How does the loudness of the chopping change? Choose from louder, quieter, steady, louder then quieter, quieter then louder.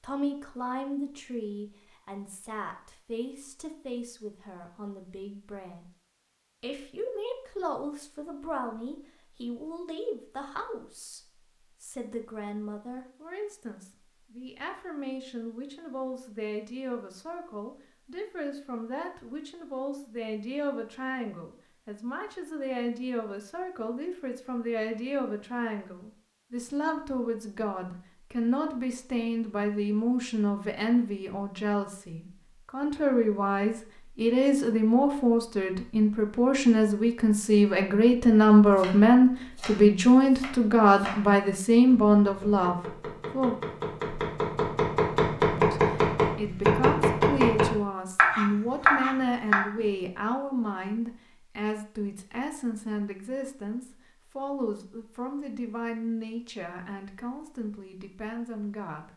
louder.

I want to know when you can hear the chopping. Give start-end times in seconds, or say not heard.
38.5-49.8.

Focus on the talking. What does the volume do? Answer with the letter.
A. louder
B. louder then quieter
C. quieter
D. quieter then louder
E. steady
B.